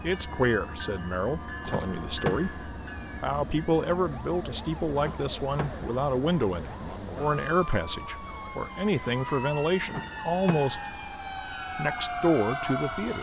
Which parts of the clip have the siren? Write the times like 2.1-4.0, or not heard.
0.0-13.1.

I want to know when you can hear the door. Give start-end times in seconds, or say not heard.
1.6-2.6, 5.0-6.0, 9.8-10.9.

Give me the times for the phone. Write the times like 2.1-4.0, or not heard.
not heard.